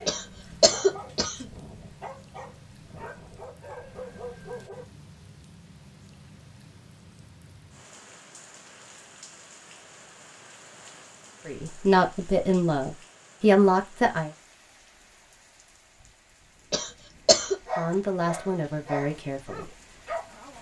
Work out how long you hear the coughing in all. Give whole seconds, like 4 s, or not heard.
2 s.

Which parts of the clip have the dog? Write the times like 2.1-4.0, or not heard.
0.0-4.8, 17.4-20.5.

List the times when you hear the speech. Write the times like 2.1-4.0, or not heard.
11.4-14.3, 17.7-19.7.